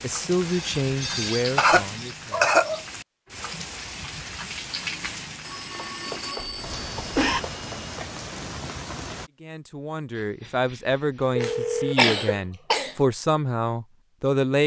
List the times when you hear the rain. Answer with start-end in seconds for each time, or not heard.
0.0-9.3.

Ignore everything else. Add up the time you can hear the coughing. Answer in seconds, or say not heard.
4 s.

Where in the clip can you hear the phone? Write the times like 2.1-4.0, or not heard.
0.2-1.4, 5.4-8.0, 10.2-11.9.